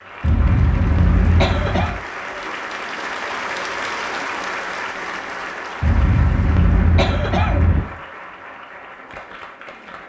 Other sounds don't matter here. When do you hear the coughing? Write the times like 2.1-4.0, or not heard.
0.2-2.0, 5.8-7.8.